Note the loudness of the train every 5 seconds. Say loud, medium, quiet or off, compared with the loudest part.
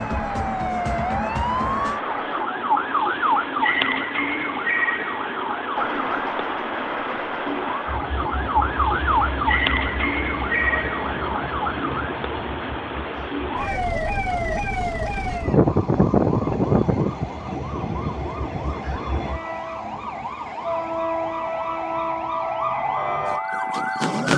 loud, loud, medium, medium, loud.